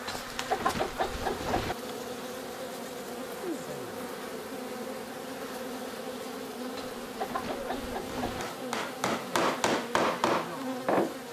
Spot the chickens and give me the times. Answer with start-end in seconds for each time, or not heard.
0.1-1.8, 6.8-8.4.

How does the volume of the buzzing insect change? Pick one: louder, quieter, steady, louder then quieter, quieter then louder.
steady.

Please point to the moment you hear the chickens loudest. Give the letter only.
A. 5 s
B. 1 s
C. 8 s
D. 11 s
B.